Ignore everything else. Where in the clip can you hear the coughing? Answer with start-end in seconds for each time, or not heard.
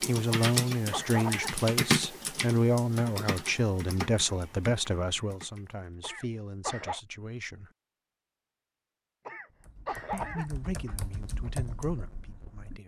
0.3-1.6, 6.0-7.0, 9.2-10.9.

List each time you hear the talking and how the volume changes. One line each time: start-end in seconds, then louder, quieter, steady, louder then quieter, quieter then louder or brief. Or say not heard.
0.1-7.7 quieter
10.1-12.8 brief.